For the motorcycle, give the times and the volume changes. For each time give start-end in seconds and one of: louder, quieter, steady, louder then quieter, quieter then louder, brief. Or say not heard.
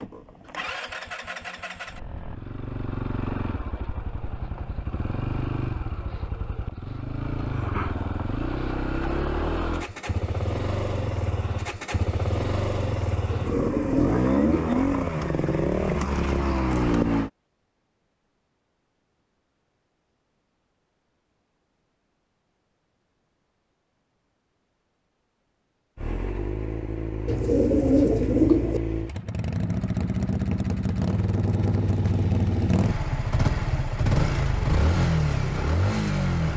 0.0-17.3 louder
25.9-36.5 louder.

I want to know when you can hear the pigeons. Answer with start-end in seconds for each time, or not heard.
13.3-14.8, 27.2-28.8.